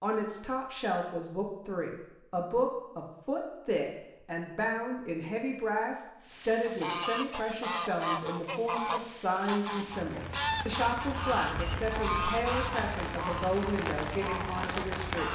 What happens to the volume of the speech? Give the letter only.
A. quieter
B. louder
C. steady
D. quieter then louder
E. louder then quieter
C.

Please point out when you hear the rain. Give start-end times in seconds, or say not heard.
6.2-15.3.